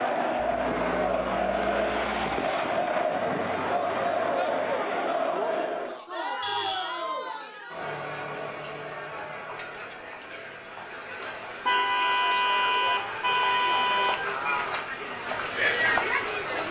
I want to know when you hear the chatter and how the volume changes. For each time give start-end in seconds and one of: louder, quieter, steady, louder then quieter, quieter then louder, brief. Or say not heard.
0.0-16.6 quieter then louder.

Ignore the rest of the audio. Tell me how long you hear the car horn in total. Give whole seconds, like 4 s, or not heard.
5 s.